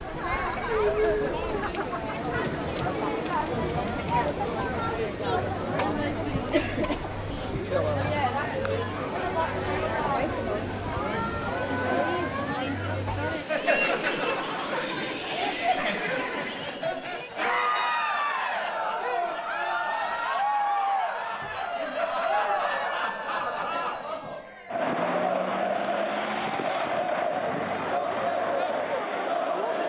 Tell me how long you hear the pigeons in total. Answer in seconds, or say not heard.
not heard.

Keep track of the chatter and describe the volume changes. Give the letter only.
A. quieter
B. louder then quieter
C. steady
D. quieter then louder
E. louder
C.